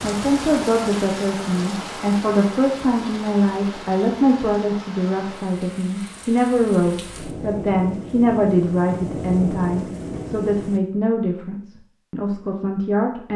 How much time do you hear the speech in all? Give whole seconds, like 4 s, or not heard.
13 s.